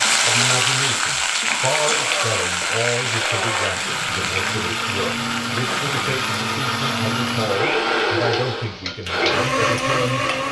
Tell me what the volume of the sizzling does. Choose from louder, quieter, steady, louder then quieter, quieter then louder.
quieter.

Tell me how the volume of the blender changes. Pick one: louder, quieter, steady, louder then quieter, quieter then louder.
louder.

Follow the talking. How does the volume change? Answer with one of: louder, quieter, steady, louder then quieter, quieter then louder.
steady.